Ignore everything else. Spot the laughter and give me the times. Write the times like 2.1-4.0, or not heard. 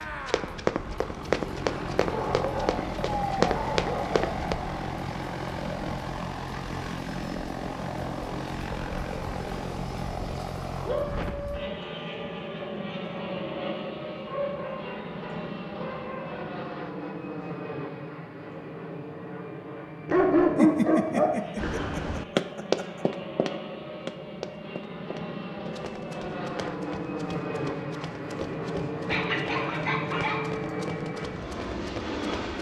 20.6-23.1.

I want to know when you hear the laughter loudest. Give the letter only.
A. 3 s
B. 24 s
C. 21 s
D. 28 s
C.